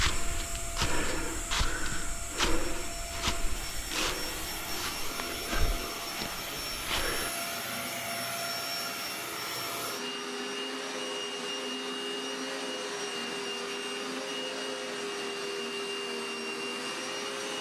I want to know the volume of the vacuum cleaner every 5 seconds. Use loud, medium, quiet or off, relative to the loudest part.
medium, loud, loud, loud.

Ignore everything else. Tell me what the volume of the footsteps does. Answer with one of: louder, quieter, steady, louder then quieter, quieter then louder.
quieter.